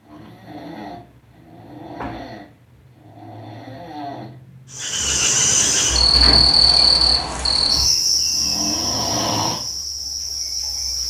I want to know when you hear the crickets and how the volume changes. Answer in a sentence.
The crickets can be heard from 4.7 to 11.0 s, getting quieter.